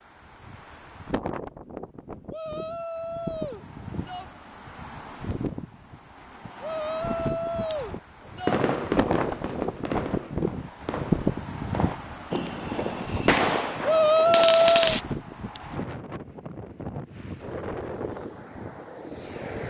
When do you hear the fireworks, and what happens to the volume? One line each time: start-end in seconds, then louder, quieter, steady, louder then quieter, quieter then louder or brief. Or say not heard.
8.2-15.0 quieter then louder.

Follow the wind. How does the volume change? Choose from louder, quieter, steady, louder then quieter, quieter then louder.
louder then quieter.